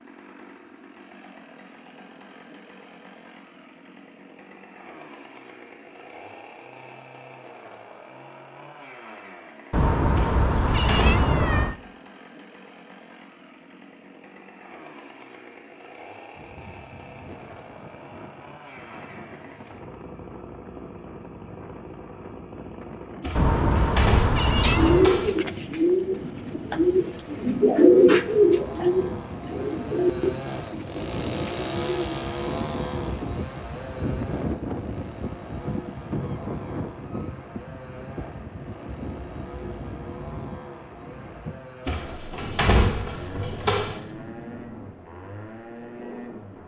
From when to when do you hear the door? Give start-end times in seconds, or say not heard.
10.2-11.2, 23.2-25.4, 41.9-44.0.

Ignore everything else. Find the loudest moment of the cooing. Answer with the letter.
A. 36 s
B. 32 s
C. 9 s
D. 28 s
D.